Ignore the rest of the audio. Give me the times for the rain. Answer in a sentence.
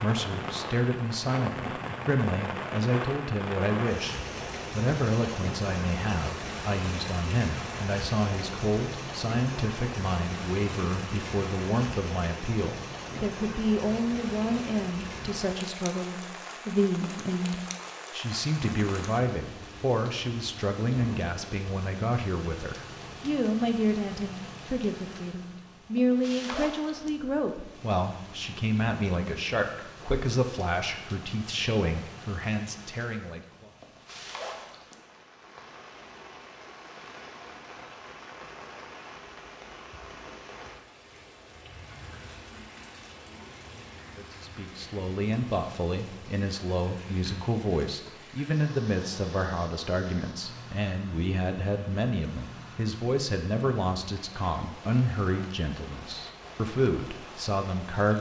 You can hear the rain from 0.0 to 58.1 s.